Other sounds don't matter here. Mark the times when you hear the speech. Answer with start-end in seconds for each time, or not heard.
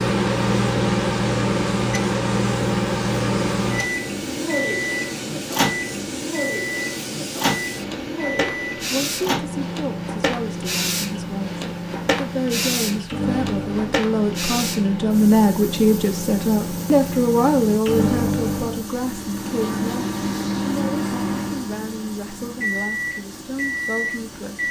8.8-24.6.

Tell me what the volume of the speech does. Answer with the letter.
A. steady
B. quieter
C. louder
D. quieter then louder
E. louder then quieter
E.